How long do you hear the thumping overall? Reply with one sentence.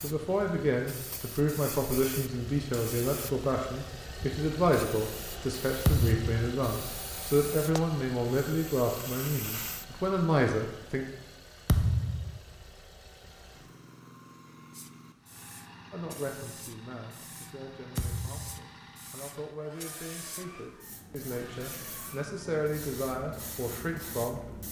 The thumping can be heard for 2 seconds in total.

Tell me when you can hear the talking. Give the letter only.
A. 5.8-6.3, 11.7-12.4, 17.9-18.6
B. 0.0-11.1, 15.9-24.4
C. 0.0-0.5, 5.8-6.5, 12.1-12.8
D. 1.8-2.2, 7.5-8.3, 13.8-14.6
B.